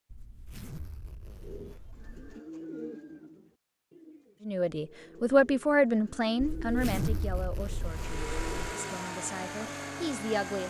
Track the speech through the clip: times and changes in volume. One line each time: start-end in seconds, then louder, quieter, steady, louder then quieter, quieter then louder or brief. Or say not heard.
4.5-10.6 quieter then louder.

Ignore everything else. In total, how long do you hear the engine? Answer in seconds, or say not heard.
3 s.